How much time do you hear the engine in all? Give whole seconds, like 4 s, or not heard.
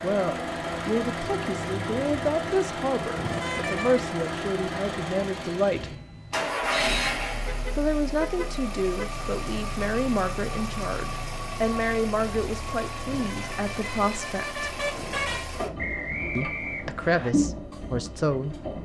19 s.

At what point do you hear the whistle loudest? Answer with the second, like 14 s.
16 s.